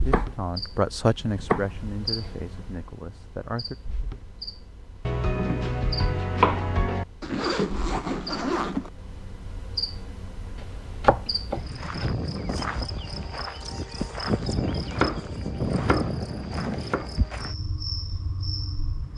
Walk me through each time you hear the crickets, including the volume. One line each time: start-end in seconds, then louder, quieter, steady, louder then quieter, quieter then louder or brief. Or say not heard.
0.0-19.1 louder.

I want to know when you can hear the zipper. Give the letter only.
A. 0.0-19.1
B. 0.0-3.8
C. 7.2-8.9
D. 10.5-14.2
C.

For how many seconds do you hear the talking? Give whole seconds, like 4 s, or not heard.
4 s.